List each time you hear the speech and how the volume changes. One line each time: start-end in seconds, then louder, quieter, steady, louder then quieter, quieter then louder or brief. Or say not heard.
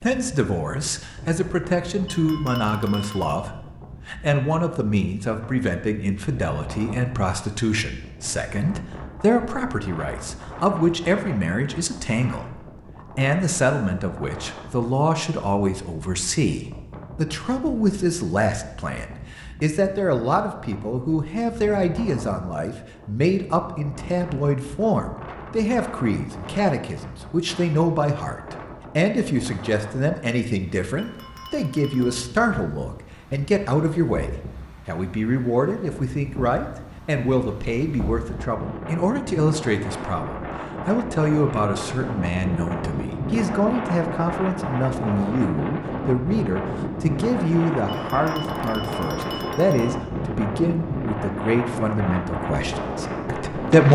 0.0-53.8 steady.